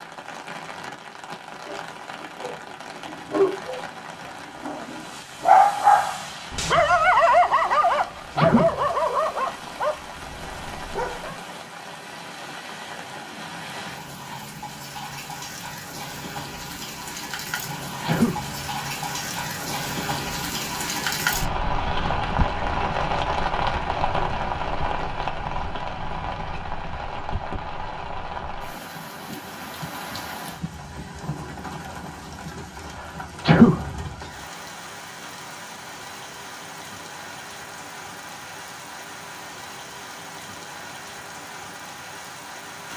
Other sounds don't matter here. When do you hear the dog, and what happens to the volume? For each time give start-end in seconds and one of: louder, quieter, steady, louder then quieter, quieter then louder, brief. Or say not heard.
1.6-11.4 louder then quieter.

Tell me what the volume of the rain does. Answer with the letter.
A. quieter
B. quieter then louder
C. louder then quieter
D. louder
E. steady
C.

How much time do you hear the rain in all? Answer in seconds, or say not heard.
43 s.